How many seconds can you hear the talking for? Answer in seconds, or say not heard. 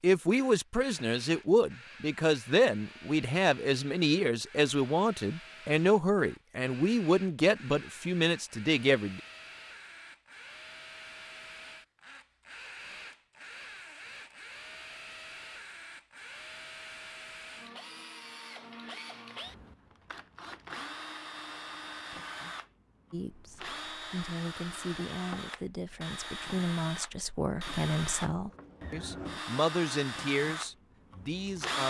18 s.